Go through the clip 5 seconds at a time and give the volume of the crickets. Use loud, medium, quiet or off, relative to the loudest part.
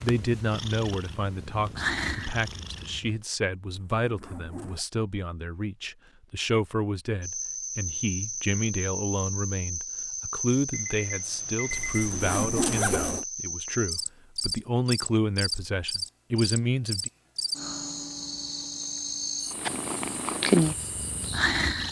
off, loud, loud, loud, medium.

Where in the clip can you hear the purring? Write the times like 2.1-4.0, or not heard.
0.0-3.1, 19.5-21.8.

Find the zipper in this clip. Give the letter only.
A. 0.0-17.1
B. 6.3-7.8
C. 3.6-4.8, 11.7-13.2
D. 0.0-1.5
C.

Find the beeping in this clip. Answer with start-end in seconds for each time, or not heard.
10.7-12.2.